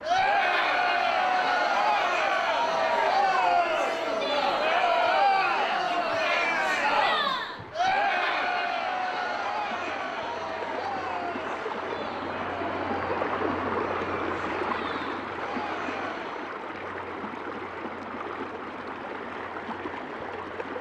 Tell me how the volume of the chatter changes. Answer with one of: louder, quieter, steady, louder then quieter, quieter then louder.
quieter.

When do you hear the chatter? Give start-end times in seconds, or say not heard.
0.0-16.6.